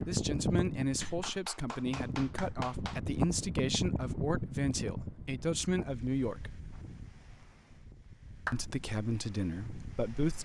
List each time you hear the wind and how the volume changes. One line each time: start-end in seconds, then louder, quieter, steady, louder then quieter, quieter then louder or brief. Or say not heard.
0.0-10.3 quieter.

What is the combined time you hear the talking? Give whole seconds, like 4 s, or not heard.
8 s.